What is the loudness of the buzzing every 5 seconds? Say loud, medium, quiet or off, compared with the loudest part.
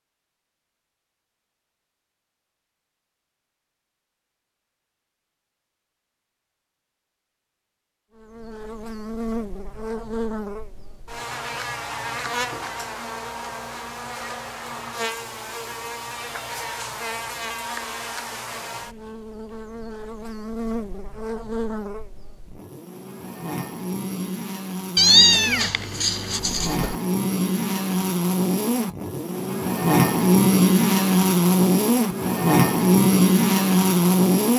off, quiet, quiet, quiet, quiet, medium, loud.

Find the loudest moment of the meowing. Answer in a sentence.
The loudest moment of the meowing is at 25 seconds.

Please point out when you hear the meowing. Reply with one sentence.
The meowing can be heard from 24.9 to 26.9 s.